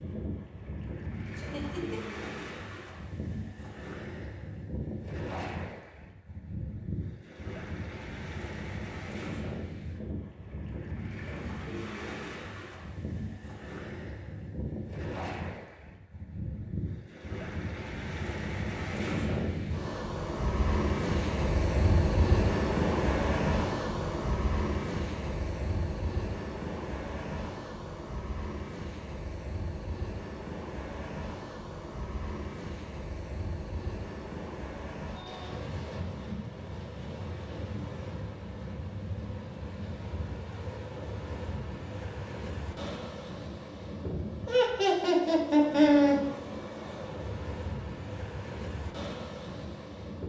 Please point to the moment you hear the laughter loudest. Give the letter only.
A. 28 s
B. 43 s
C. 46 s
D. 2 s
C.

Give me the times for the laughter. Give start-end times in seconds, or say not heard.
1.4-2.1, 44.5-46.1.